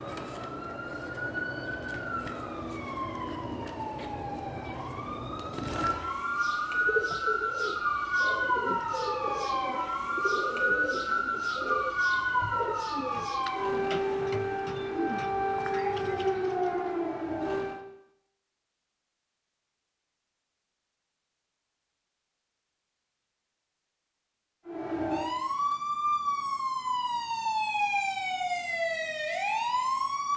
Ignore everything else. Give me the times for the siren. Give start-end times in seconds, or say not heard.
0.0-17.9, 24.6-30.3.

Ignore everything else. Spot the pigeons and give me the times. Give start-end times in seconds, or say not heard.
6.7-16.9.